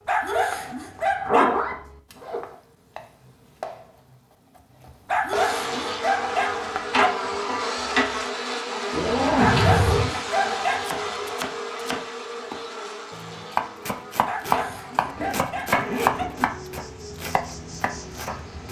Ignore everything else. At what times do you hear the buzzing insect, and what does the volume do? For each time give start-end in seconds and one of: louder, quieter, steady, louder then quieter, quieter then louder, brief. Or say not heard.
5.3-18.6 quieter.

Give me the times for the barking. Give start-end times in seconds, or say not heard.
0.1-1.6, 5.0-7.1, 9.3-11.3, 14.2-16.2.